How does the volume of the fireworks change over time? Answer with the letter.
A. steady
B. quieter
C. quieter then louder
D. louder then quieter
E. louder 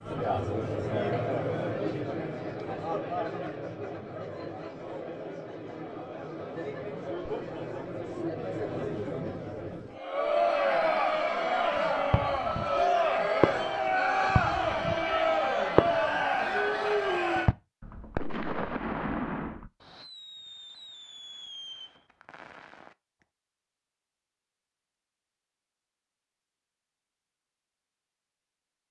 B.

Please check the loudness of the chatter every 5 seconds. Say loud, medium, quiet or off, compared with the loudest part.
medium, medium, loud, loud, off, off.